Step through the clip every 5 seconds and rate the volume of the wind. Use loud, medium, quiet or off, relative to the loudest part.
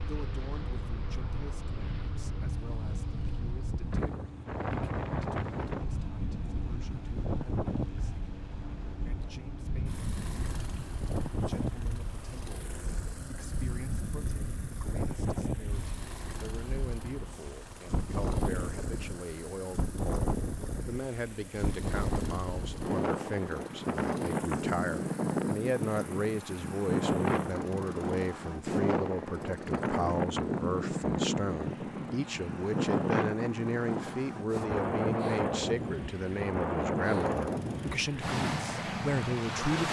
medium, medium, medium, medium, loud, loud, loud, loud.